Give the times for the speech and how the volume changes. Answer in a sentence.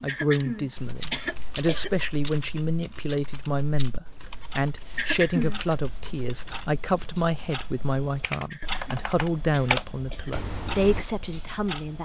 You can hear the speech from 0.0 to 12.0 s, at a steady volume.